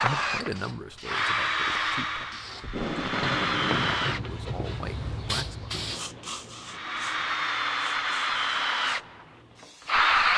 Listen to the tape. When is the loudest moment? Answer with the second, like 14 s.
3 s.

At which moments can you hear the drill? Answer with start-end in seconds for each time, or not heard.
0.0-4.2, 6.7-10.3.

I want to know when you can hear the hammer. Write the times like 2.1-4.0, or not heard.
not heard.